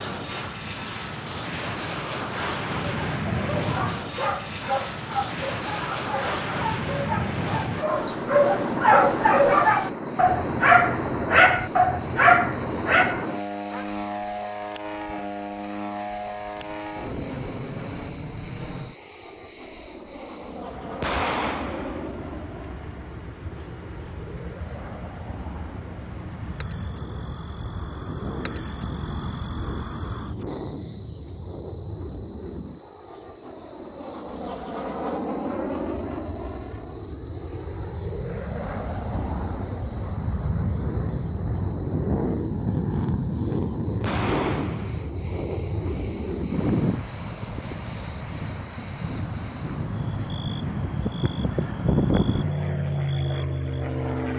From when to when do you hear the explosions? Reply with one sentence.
The explosions can be heard from 21.0 to 22.1 s and from 44.0 to 45.1 s.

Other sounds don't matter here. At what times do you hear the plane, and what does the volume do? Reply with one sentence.
You can hear the plane from 0.0 to 54.3 s, getting quieter then louder.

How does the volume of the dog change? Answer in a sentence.
The loudness of the dog goes up.